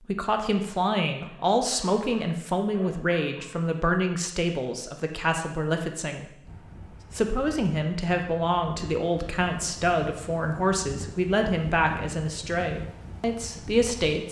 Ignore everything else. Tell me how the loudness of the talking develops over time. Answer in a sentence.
The loudness of the talking stays about the same.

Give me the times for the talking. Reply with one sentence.
The talking can be heard from 0.0 to 6.4 s and from 7.1 to 14.2 s.